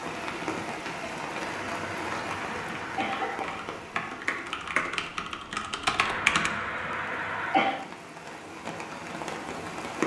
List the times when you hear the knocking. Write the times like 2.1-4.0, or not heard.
not heard.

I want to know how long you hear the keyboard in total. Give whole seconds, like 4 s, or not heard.
4 s.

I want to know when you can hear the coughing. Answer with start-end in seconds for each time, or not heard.
1.7-3.5, 6.0-7.8.